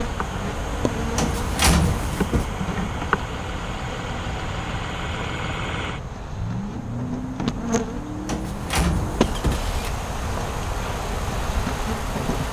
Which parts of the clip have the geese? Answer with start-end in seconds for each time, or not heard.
not heard.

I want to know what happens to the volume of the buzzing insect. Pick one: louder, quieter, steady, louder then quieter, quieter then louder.
quieter then louder.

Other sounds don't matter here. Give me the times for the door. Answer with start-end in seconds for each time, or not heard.
1.1-2.5, 8.2-9.8.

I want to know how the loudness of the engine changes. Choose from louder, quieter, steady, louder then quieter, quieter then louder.
louder then quieter.